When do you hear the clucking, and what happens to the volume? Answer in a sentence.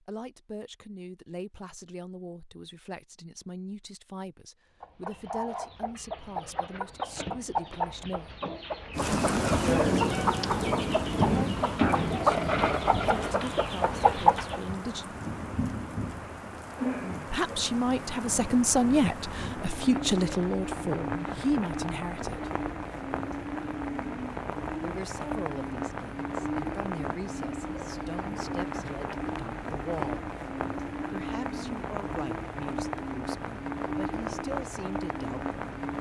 You can hear the clucking from 4.8 to 14.6 s, getting louder.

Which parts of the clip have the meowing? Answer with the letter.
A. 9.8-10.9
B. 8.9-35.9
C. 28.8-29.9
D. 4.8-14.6
A.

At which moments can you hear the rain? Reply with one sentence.
You can hear the rain from 8.9 to 35.9 s.